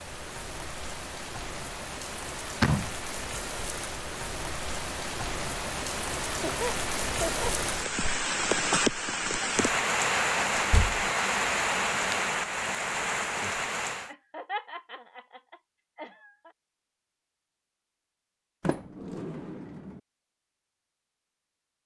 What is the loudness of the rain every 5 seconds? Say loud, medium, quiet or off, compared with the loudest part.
medium, loud, loud, off, off.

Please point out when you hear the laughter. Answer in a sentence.
The laughter can be heard from 6.2 to 7.5 s and from 14.1 to 16.5 s.